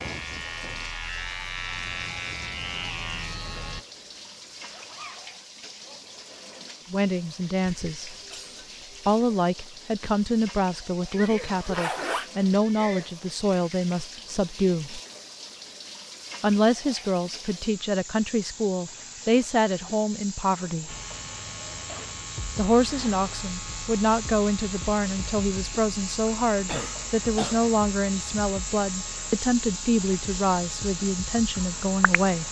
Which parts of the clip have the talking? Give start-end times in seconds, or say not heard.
6.9-8.2, 9.1-15.0, 16.4-20.9, 22.6-32.4.